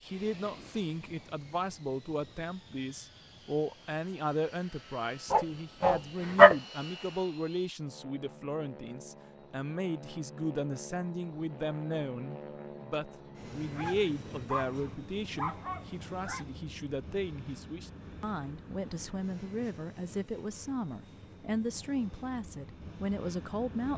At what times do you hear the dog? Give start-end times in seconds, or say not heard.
5.3-6.5, 13.6-16.4.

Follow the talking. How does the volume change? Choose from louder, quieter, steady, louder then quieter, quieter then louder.
steady.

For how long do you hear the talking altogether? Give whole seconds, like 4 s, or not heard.
24 s.